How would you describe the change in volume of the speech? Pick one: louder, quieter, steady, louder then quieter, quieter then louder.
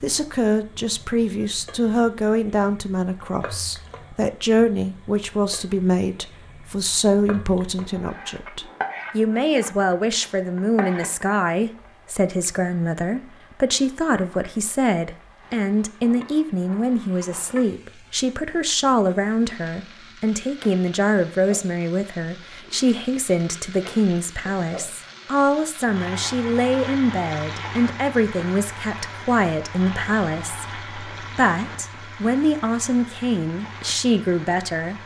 steady.